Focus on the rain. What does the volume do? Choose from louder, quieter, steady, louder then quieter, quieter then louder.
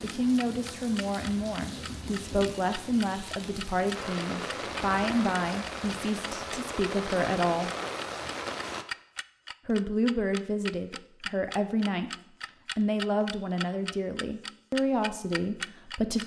louder.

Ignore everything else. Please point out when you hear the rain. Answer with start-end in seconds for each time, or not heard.
0.0-8.8.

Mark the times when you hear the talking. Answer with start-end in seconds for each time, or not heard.
0.0-7.7, 9.7-12.1, 12.8-16.2.